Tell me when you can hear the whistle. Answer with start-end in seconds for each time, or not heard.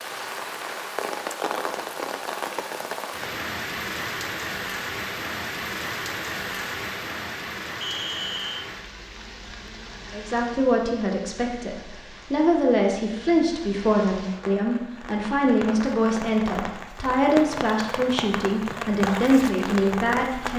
7.8-8.7.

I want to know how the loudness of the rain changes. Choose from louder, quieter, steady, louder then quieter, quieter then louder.
quieter then louder.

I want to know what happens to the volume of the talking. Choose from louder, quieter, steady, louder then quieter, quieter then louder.
steady.